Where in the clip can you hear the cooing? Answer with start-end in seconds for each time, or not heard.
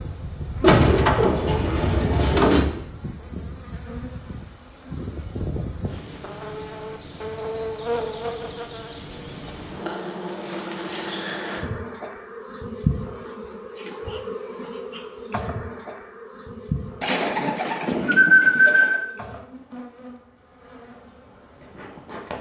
0.6-2.6, 17.0-19.1.